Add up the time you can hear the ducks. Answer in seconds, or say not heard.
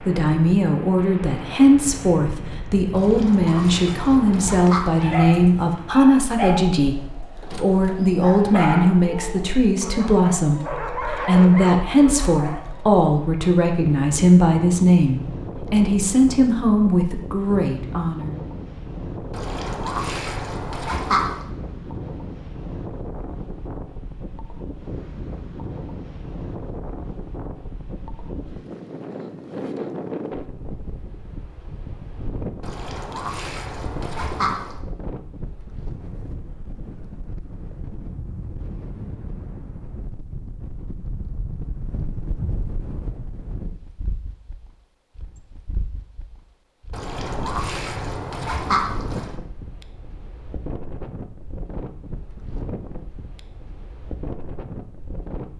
9 s.